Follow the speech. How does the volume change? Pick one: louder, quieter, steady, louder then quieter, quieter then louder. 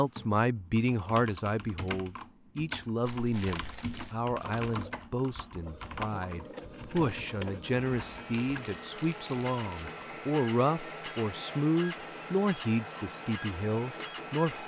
steady.